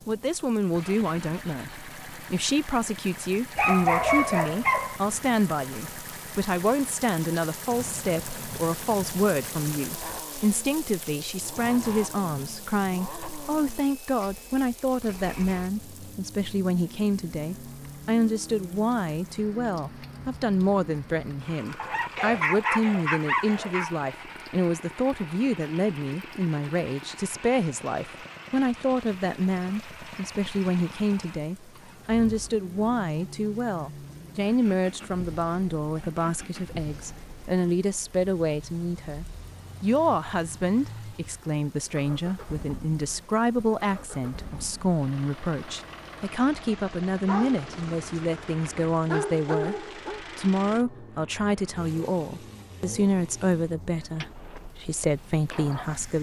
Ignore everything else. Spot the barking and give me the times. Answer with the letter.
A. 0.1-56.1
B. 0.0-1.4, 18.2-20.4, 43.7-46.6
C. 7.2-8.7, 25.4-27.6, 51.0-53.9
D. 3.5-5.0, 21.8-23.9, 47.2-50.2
D.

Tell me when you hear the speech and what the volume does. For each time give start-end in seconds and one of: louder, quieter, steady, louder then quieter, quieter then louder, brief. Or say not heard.
0.1-56.1 steady.